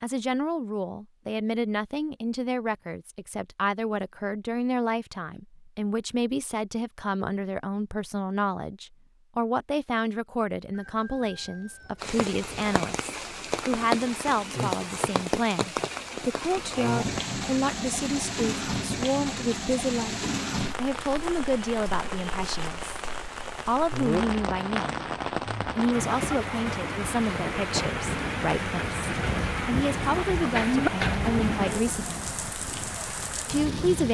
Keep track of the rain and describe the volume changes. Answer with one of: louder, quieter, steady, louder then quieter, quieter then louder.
steady.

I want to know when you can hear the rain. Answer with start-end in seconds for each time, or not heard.
12.0-34.0.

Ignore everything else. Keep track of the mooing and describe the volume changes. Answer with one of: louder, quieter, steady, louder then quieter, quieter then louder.
louder then quieter.